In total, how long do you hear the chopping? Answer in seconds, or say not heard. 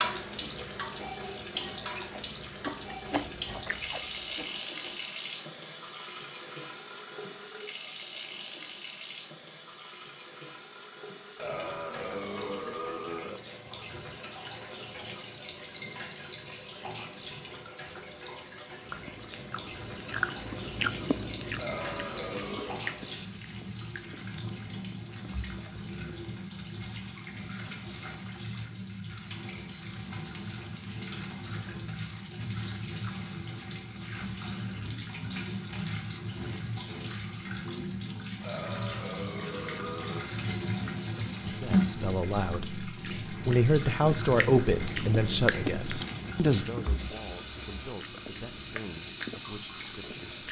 not heard.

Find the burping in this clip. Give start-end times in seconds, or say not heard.
11.3-13.4, 21.6-22.9, 38.4-40.3.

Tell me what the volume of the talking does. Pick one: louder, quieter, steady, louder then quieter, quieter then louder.
louder then quieter.